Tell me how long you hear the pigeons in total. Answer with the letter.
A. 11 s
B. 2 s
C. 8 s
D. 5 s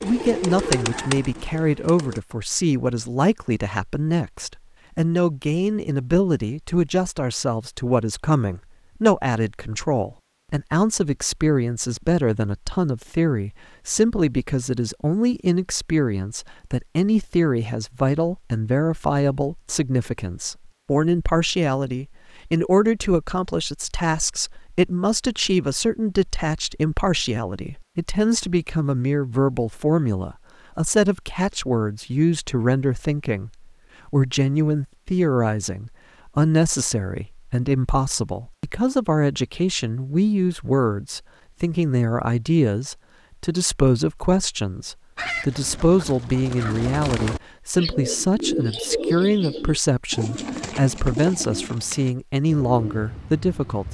A.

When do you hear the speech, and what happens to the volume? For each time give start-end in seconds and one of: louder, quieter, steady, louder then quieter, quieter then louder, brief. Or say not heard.
0.0-53.8 steady.